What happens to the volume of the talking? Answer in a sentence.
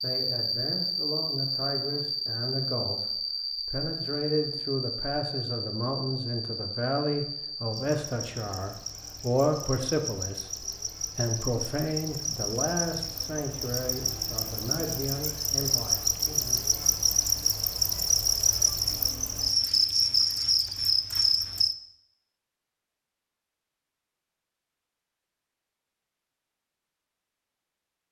The volume of the talking goes up, then down.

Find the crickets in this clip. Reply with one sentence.
The crickets can be heard from 0.0 to 21.8 s.